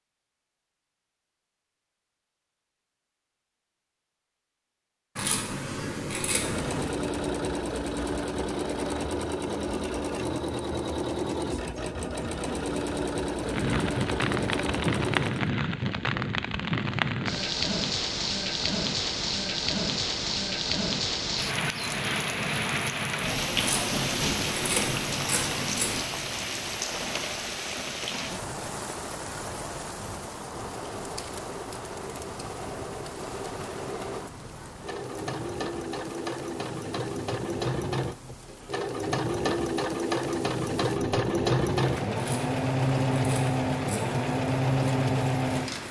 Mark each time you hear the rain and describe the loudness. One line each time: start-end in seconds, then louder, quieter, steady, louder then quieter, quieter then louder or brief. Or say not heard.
13.4-45.8 quieter.